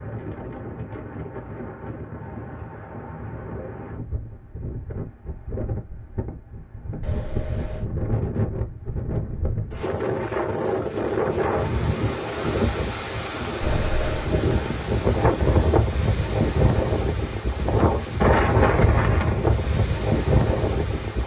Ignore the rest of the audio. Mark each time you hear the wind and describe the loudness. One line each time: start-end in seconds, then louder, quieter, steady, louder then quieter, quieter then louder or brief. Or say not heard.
0.0-21.2 louder.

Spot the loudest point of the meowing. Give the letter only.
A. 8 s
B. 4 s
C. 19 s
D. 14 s
D.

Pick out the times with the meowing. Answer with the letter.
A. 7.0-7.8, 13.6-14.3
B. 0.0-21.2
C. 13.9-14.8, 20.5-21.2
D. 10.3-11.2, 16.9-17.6
A.